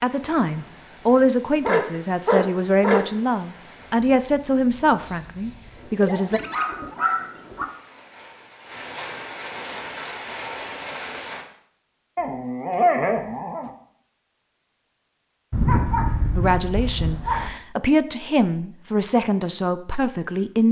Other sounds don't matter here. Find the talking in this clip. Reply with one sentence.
The talking can be heard from 0.0 to 6.4 s and from 16.4 to 20.6 s.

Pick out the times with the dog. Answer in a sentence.
The dog can be heard from 1.6 to 3.0 s, from 6.0 to 7.7 s, from 12.2 to 13.7 s and from 15.5 to 17.5 s.